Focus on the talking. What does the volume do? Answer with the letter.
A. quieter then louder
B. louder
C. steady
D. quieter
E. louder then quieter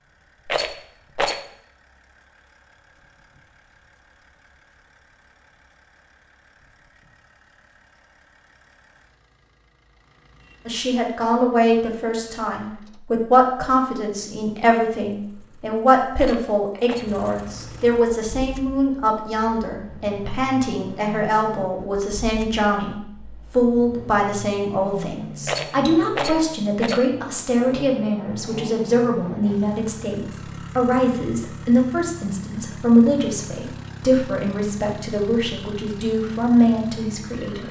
C.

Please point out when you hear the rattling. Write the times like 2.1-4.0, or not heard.
0.5-1.4, 16.1-17.1, 25.4-27.1.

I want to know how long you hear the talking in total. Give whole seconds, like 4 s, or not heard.
27 s.